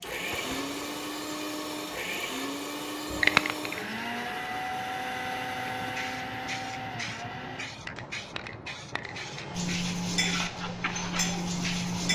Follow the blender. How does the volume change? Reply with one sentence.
The loudness of the blender goes down.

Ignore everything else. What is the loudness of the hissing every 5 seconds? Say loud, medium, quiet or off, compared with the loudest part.
loud, medium, medium.